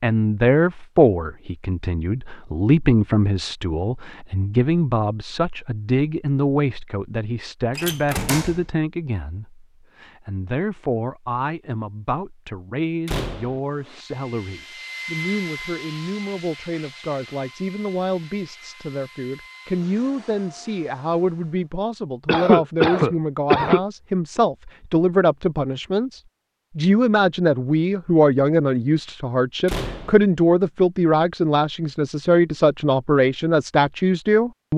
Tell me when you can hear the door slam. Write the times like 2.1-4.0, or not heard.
7.8-8.6, 13.1-13.6, 29.6-30.2.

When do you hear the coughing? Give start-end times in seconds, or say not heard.
22.2-23.8.